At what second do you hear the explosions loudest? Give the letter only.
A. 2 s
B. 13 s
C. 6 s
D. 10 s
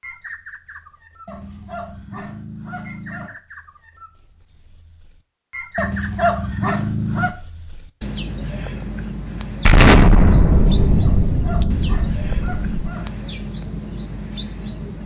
D.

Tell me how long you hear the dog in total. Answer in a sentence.
The dog can be heard for 6 seconds in total.